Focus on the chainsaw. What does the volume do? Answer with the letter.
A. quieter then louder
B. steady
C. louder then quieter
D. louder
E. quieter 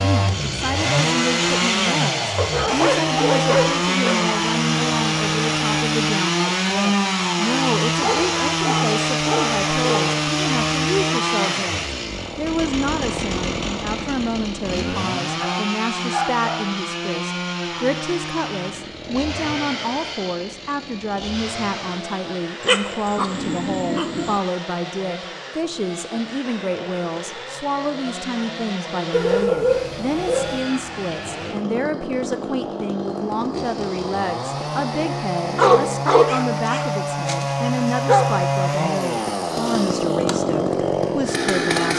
A.